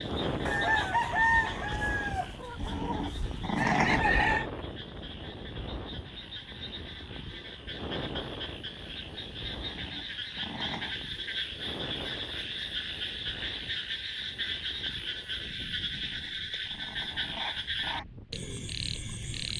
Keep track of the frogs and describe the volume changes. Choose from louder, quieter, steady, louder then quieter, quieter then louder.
louder.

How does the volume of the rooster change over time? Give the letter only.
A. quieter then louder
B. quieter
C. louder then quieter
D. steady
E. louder
A.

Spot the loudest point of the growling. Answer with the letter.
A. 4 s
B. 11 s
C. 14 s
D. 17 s
A.